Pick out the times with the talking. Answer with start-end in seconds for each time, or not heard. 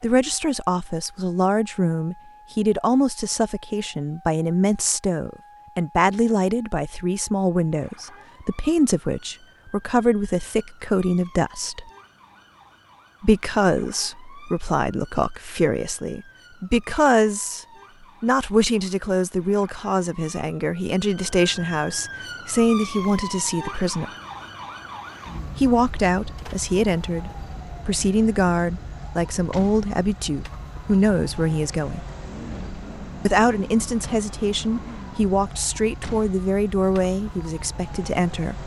0.0-11.8, 13.2-24.1, 25.6-32.0, 33.2-38.6.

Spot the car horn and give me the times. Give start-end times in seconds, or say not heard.
not heard.